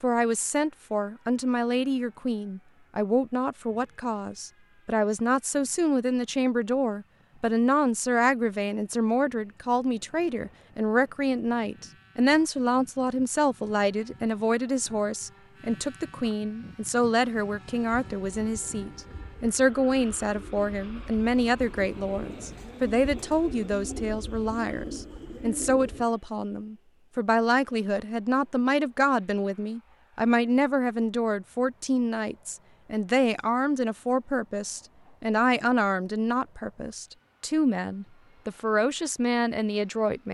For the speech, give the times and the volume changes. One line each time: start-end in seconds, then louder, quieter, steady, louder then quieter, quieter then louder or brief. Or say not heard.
0.0-40.3 steady.